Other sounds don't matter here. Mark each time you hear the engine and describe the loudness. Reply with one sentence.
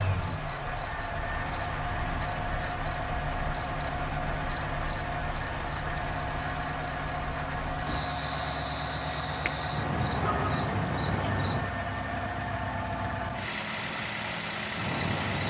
You can hear the engine from 0.0 to 15.4 s, at a steady volume.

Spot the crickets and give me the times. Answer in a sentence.
The crickets can be heard from 0.2 to 15.4 s.